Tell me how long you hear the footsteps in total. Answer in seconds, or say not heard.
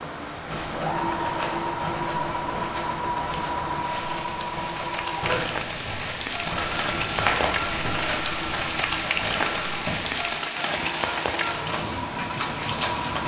10 s.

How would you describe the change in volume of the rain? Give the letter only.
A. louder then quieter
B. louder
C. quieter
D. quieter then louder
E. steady
B.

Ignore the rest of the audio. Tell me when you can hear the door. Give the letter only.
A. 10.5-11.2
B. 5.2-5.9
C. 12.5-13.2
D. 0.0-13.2
B.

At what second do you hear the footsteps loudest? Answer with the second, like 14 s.
7 s.